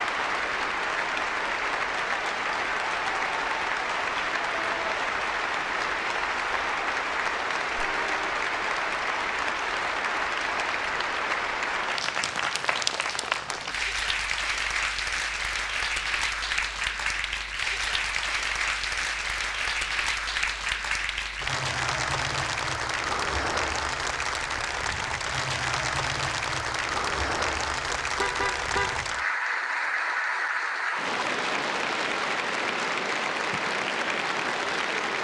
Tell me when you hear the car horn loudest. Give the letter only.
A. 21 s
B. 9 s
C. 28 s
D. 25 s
C.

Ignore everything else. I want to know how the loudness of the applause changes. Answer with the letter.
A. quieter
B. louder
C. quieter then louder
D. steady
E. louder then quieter
D.